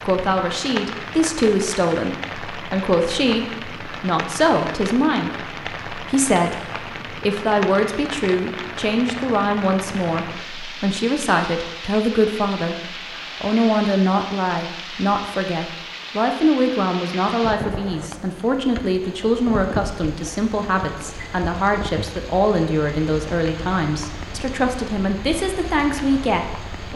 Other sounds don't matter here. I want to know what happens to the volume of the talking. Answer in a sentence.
The volume of the talking stays about the same.